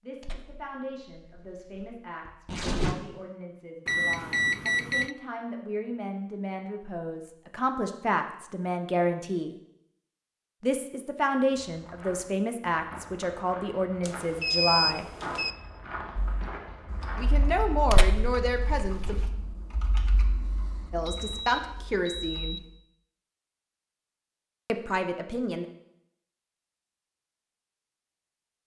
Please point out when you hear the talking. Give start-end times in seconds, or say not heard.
0.0-9.6, 10.6-15.1, 17.1-19.1, 20.9-22.6, 24.6-25.6.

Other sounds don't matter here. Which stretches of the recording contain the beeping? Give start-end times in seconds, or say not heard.
3.9-5.2, 14.0-15.6, 21.1-22.7.